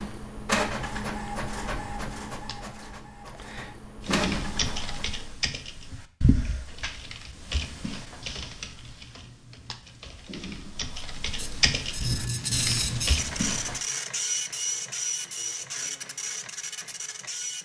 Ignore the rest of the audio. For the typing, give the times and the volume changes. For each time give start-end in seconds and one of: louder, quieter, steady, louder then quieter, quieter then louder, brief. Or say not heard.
4.0-13.8 quieter then louder.